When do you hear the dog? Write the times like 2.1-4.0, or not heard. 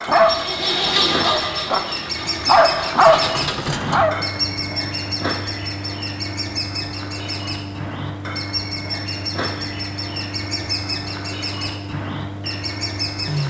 0.0-4.2.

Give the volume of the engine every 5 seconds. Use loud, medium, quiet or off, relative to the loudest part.
loud, medium, medium.